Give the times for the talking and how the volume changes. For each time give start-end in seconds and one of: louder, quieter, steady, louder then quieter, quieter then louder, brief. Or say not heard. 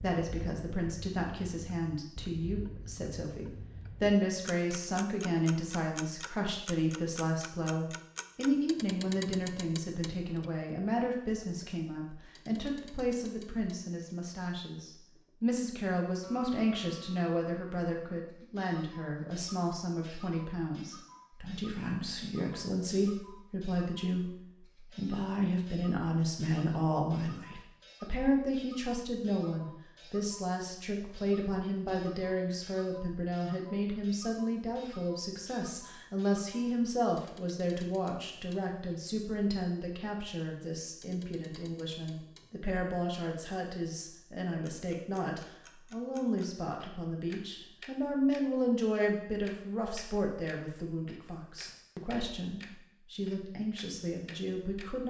0.0-55.0 steady.